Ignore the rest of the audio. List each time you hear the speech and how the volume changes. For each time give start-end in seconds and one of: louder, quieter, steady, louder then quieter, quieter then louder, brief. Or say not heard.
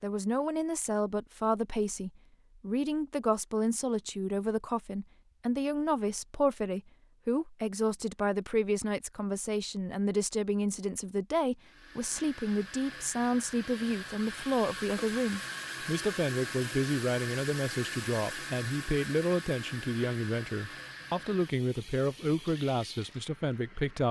0.0-24.0 steady.